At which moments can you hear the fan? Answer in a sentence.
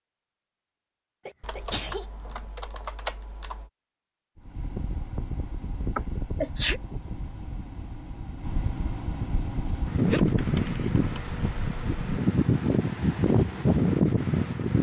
The fan can be heard from 4.3 to 14.7 s.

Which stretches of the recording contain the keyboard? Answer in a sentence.
The keyboard can be heard from 1.4 to 3.6 s and from 10.2 to 11.9 s.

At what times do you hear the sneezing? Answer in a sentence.
The sneezing can be heard from 1.2 to 2.0 s, from 6.0 to 6.8 s and from 10.1 to 10.9 s.